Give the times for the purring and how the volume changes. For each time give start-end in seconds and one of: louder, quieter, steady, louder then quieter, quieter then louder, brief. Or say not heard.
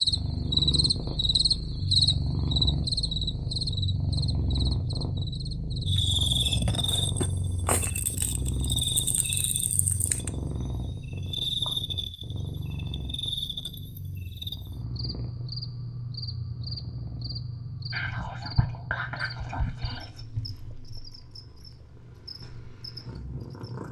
0.0-23.8 quieter.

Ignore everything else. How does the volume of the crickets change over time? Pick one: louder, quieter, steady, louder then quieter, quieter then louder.
quieter.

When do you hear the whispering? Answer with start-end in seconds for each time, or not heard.
17.9-20.2.